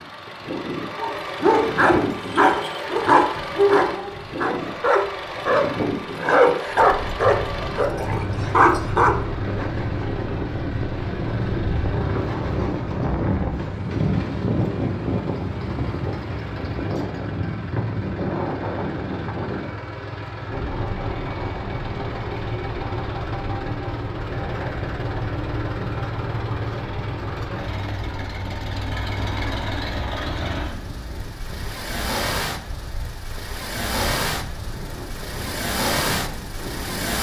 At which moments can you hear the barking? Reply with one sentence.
The barking can be heard from 0.9 to 9.2 s.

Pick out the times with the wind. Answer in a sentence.
The wind can be heard from 6.7 to 37.1 s.